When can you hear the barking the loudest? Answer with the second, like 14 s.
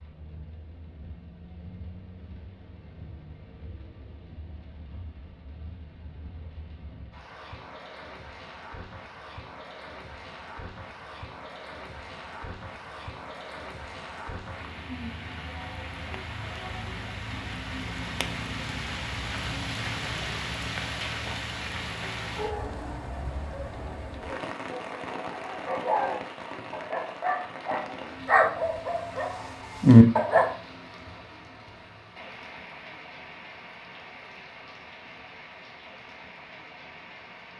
30 s.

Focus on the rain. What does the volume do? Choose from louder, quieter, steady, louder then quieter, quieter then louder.
louder then quieter.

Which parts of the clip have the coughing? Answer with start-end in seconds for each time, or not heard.
not heard.